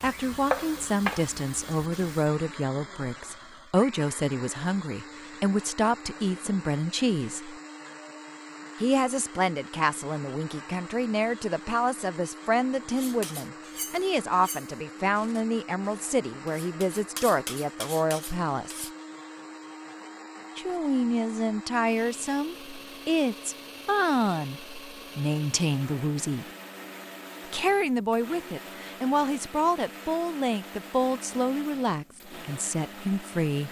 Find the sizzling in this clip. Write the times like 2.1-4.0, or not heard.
0.0-2.3.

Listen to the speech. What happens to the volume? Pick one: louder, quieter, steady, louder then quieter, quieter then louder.
steady.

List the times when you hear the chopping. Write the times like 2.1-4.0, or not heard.
not heard.